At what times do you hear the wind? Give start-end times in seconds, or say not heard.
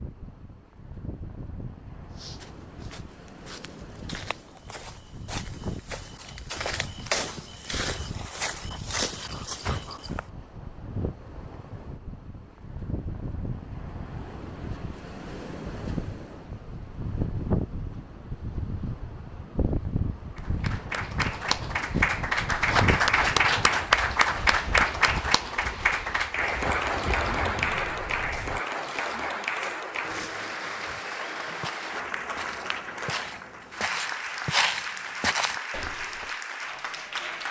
0.0-28.6.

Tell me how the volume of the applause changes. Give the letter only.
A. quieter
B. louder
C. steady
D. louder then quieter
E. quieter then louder
A.